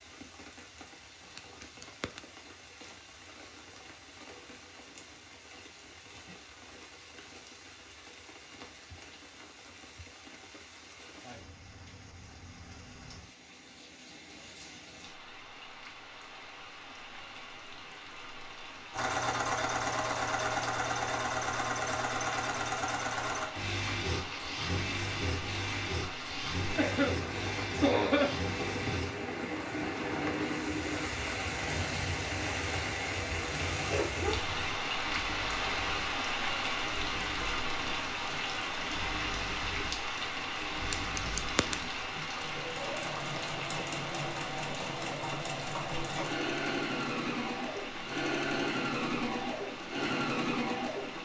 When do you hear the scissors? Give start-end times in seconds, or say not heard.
1.2-2.2, 40.8-41.8.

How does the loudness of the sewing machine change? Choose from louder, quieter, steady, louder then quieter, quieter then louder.
quieter then louder.